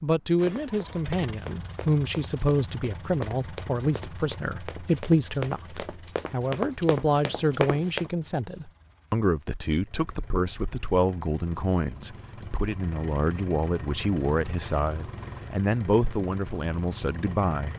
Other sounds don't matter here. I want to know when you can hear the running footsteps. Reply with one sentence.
The running footsteps can be heard from 0.3 to 8.1 s.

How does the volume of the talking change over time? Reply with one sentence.
The loudness of the talking stays about the same.